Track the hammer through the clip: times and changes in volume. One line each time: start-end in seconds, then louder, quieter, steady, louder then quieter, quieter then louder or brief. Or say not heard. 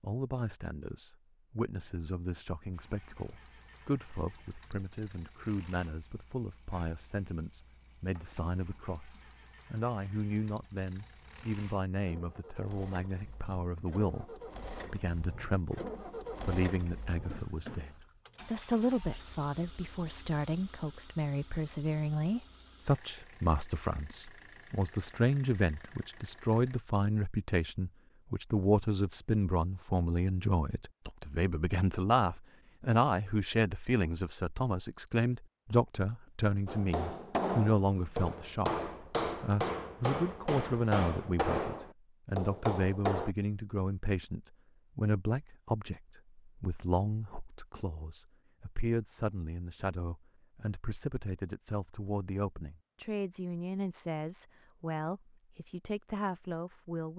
36.6-43.4 steady.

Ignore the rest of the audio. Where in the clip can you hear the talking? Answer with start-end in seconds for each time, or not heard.
0.0-57.1.